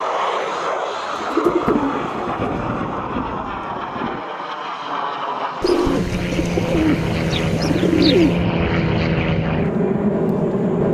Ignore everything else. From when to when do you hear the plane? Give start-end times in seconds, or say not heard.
0.0-10.8.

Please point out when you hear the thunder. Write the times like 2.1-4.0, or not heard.
1.4-4.2.